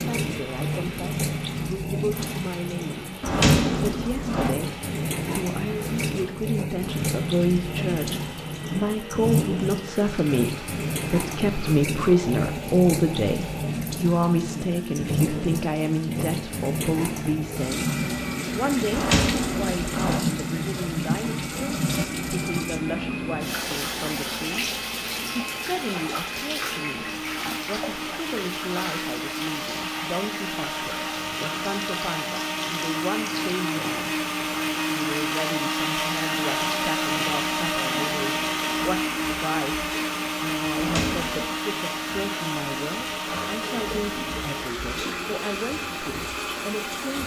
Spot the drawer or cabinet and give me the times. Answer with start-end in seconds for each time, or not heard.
3.2-4.5, 18.9-20.2, 40.8-41.5.